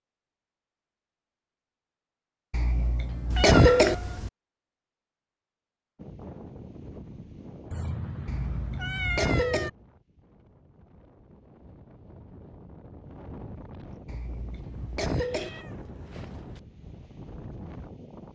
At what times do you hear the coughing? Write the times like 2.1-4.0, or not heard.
2.5-4.0, 8.2-9.7, 14.1-15.5.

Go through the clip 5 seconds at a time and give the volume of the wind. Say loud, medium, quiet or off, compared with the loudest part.
off, loud, loud, loud.